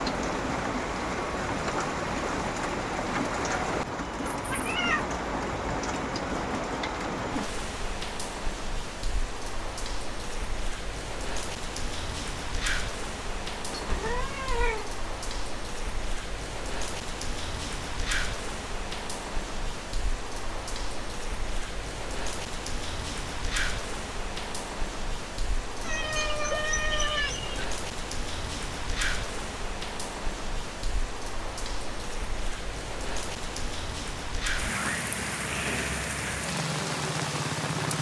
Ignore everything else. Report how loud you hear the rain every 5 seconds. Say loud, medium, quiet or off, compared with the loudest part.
loud, loud, medium, medium, medium, medium, medium, loud.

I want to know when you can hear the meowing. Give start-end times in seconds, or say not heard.
4.3-5.1, 13.7-14.9, 25.8-27.6.